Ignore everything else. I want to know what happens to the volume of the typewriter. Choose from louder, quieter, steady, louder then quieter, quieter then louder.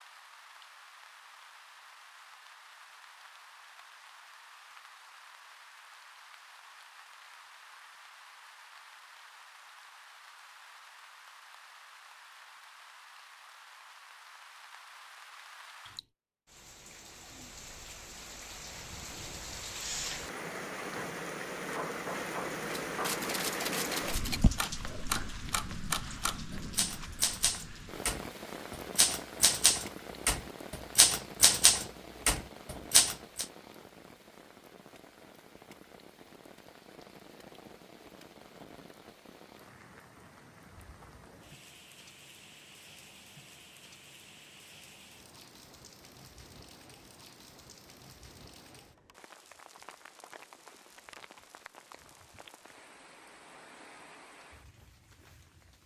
louder.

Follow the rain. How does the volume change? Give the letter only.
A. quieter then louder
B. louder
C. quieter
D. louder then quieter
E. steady
D.